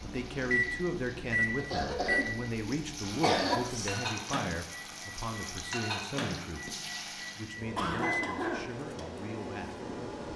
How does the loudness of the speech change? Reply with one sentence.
The volume of the speech goes down.